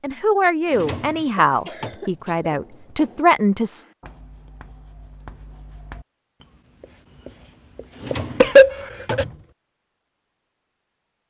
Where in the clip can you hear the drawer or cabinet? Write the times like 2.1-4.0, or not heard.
0.7-2.0, 7.9-9.4.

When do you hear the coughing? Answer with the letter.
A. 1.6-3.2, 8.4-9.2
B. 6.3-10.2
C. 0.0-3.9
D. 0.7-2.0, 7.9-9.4
A.